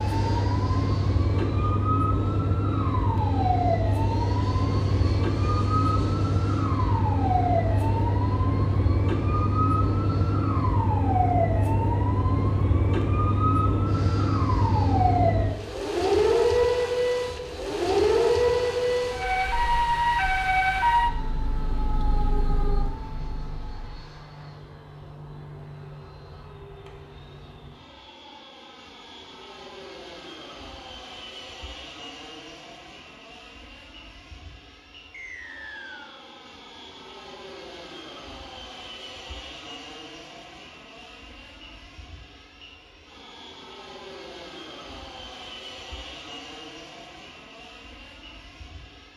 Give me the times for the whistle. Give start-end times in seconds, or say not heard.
35.1-36.2.